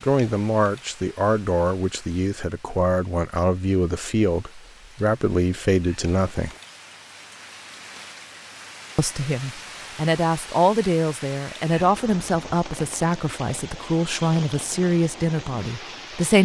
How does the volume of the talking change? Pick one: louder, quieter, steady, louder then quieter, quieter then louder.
steady.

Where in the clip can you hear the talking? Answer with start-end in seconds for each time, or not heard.
0.0-6.5, 8.9-16.4.